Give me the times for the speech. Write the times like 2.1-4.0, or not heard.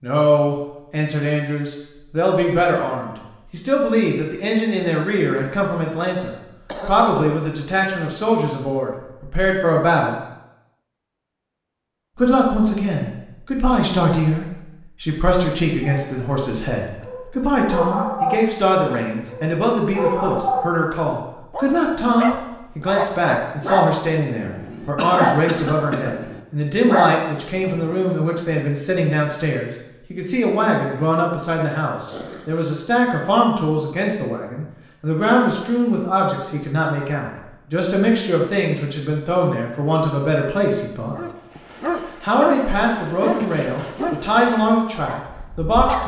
0.0-10.2, 12.2-41.1, 42.2-46.0.